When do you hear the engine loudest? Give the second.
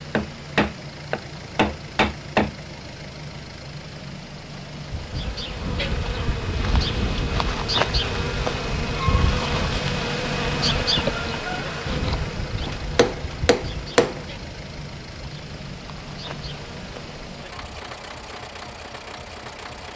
10 s.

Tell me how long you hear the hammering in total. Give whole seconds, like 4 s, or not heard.
4 s.